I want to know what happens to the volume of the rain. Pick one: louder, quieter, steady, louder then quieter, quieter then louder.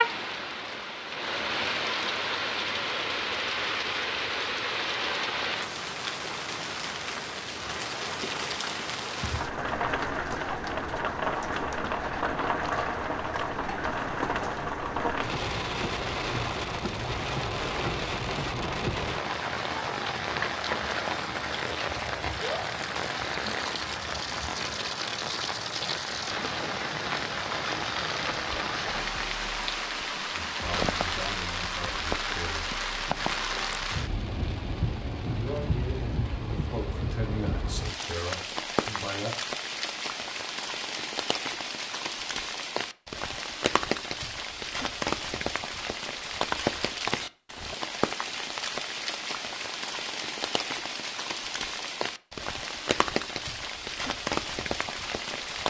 steady.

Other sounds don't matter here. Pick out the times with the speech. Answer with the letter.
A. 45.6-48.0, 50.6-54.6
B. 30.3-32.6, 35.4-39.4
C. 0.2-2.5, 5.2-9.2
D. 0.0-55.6
B.